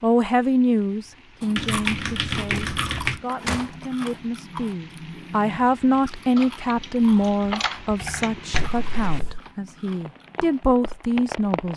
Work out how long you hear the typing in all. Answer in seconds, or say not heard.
4 s.